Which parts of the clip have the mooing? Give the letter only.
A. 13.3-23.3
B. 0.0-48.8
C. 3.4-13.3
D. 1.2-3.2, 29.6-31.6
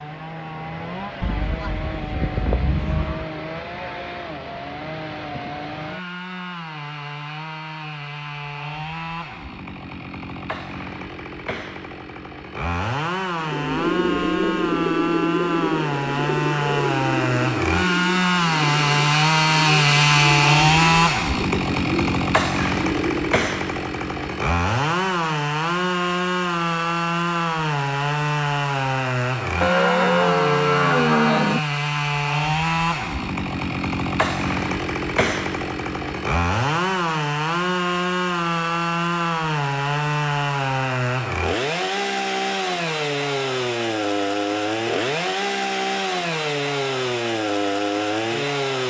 D.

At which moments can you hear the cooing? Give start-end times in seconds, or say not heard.
13.3-23.3.